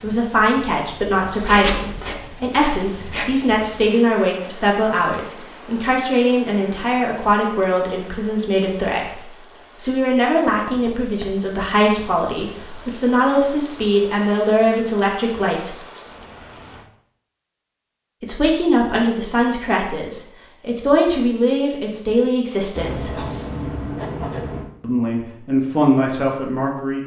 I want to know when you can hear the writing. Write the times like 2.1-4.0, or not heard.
1.3-3.8, 10.4-12.8, 22.8-24.7.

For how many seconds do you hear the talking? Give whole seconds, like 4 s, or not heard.
23 s.